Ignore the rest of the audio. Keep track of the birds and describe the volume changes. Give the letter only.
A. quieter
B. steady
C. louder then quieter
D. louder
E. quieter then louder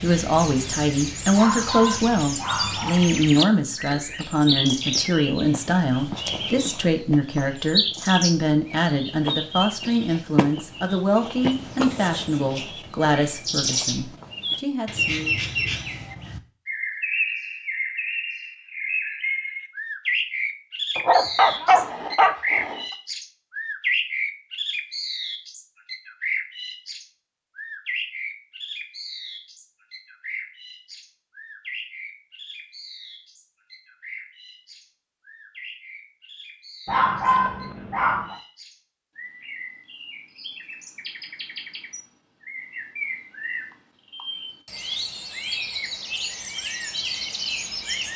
E.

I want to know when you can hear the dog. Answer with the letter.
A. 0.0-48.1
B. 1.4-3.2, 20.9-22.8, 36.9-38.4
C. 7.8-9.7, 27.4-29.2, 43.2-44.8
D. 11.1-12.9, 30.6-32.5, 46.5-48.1
B.